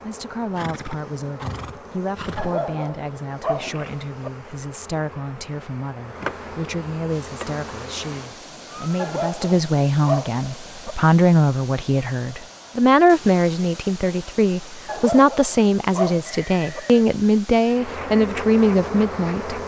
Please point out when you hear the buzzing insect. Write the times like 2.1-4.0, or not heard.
0.0-8.4, 17.6-19.6.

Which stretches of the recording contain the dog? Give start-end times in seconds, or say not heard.
2.4-4.3, 8.9-10.9, 14.8-16.8.